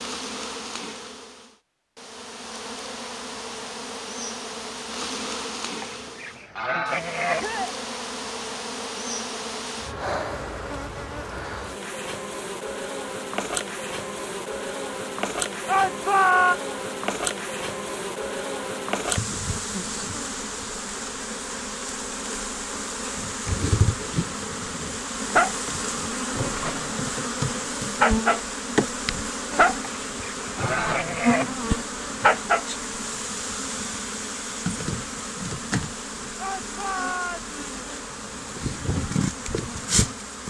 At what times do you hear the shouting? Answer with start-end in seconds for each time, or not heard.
7.3-7.8, 15.7-16.6, 36.4-37.5.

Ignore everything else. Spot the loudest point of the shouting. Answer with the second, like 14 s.
16 s.